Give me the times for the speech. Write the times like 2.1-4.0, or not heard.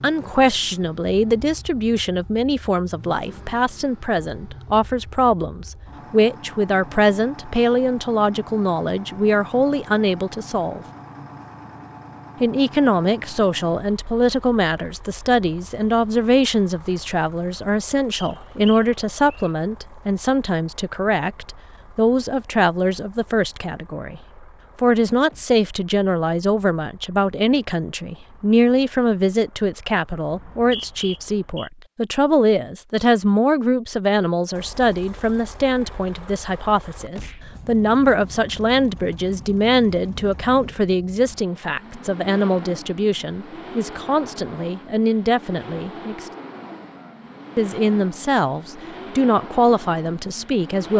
0.0-10.8, 12.4-24.2, 24.8-46.2, 47.5-50.9.